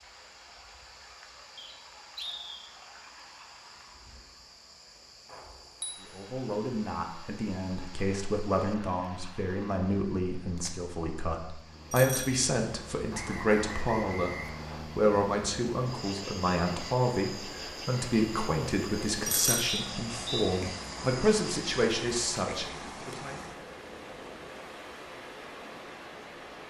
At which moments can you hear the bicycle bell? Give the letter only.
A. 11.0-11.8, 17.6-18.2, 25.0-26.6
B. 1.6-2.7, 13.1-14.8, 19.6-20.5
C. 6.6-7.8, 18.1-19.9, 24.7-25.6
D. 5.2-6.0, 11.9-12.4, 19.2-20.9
D.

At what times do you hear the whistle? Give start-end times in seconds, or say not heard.
1.6-2.7, 13.1-14.8, 19.6-20.5.